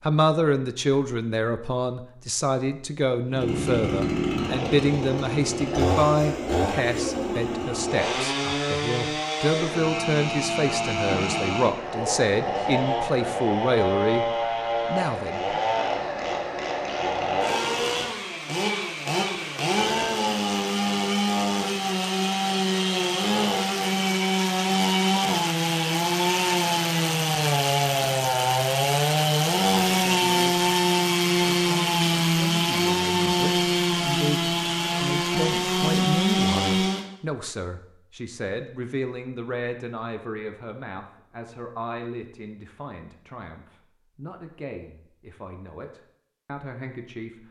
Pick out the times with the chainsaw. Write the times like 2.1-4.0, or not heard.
3.2-37.0.